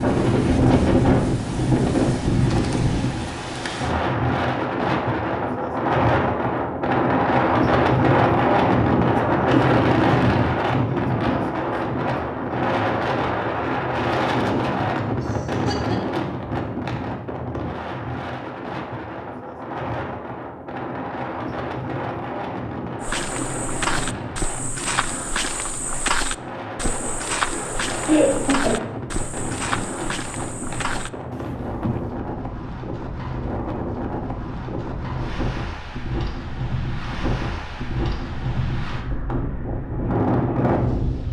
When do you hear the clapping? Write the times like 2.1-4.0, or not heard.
not heard.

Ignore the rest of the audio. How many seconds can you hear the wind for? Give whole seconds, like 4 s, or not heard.
41 s.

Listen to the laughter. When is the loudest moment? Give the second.
28 s.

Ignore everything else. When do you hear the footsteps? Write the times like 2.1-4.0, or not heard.
23.0-32.1.